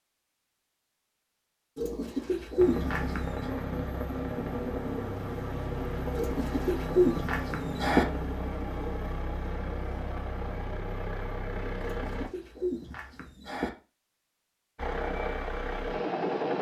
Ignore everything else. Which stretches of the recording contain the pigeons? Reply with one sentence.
You can hear the pigeons from 1.8 to 3.5 s, from 6.2 to 8.1 s and from 11.8 to 13.7 s.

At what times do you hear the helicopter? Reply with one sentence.
The helicopter can be heard from 2.5 to 12.3 s and from 14.8 to 16.5 s.